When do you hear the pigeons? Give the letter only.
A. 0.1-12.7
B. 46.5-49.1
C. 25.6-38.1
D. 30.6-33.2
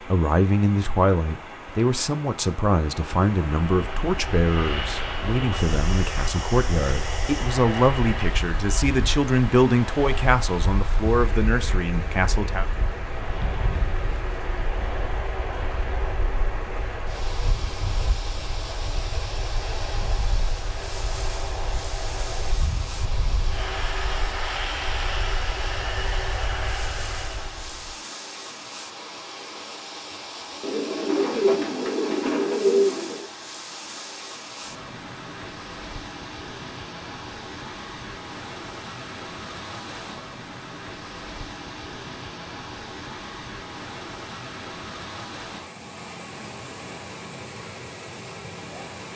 D.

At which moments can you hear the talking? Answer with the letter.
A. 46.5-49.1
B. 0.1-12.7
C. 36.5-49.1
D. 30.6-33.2
B.